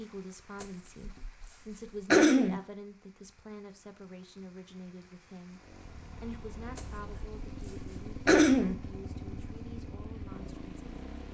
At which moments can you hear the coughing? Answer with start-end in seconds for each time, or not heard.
0.6-1.4, 2.1-2.6, 6.8-7.5, 8.2-8.8.